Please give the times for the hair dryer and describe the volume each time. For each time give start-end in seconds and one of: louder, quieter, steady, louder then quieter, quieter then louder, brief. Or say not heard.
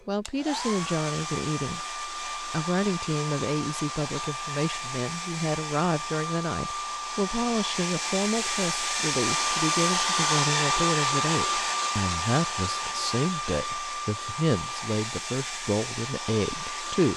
0.0-17.1 louder then quieter.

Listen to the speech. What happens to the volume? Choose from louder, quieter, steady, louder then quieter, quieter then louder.
steady.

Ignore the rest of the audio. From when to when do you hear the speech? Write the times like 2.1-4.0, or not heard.
0.1-17.1.